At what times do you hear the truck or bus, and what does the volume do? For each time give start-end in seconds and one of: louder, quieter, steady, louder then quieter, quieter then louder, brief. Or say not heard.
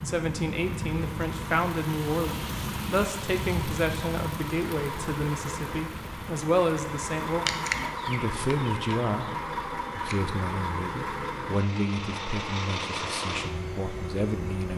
0.0-14.7 louder.